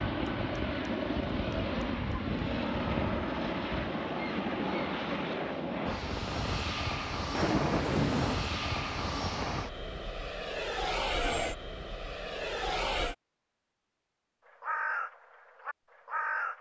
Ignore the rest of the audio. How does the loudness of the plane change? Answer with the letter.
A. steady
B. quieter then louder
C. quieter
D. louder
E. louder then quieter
A.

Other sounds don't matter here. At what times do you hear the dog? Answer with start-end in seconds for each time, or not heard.
not heard.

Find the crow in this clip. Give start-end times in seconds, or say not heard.
0.0-3.9, 14.4-16.5.